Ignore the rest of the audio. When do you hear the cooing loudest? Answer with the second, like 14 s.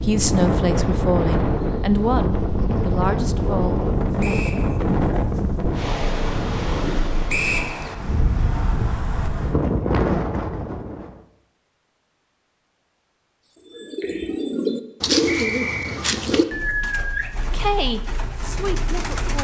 15 s.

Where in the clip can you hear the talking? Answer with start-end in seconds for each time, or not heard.
0.0-4.5, 17.4-19.3.